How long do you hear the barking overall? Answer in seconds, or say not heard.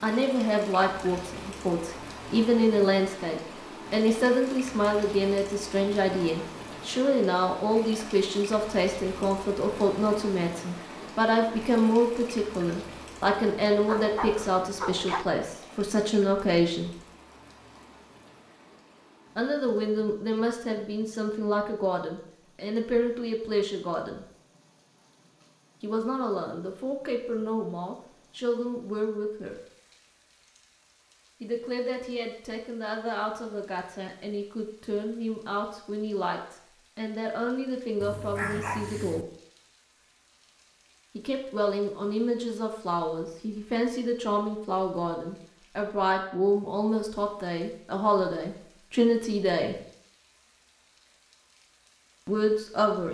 3 s.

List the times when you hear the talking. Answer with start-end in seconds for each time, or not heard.
0.0-16.9, 19.4-24.2, 25.8-29.6, 31.4-39.2, 41.1-49.8, 52.2-53.0.